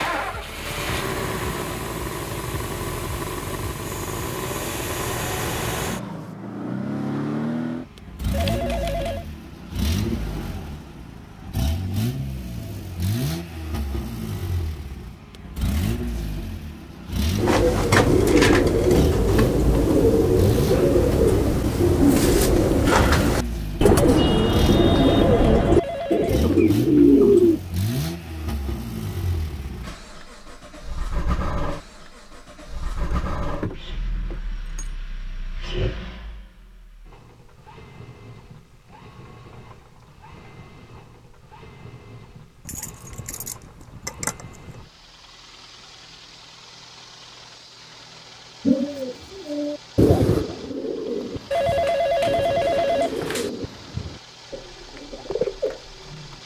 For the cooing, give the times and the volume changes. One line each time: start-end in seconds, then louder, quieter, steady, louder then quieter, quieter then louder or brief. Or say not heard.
17.4-27.6 steady
48.6-56.4 quieter.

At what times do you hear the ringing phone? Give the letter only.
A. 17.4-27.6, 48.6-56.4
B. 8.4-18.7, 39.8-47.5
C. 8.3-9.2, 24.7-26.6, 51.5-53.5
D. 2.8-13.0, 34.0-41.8
C.